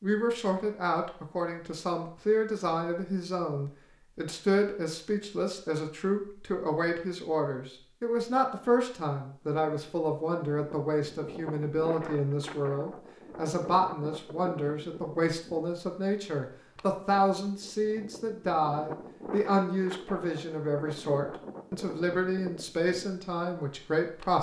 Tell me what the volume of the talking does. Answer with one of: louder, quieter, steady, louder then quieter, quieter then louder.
steady.